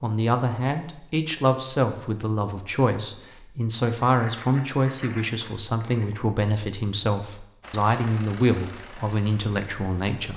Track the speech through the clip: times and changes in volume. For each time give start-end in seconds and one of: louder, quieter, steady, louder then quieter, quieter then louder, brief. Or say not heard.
0.0-10.3 steady.